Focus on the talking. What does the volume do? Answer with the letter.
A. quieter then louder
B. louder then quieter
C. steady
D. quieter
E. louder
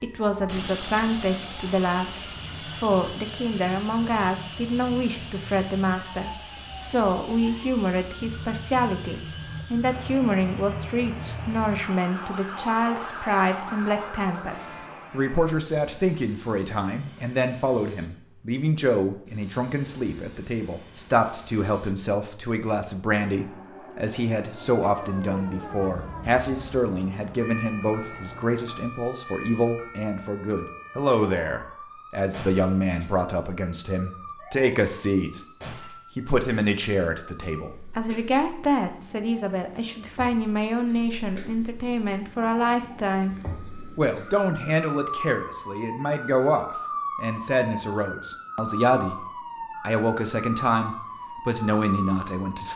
C.